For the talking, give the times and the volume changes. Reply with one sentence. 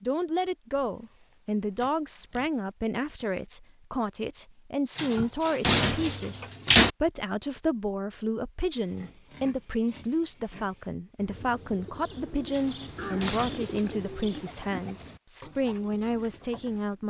You can hear the talking from 0.0 to 17.0 s, at a steady volume.